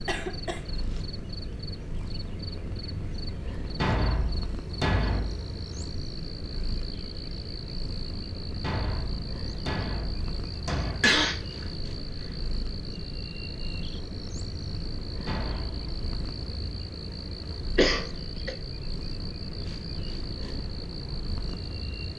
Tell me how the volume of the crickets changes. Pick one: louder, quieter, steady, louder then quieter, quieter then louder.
steady.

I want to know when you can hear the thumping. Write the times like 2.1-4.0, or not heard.
3.8-5.3, 8.6-11.1, 15.2-15.8.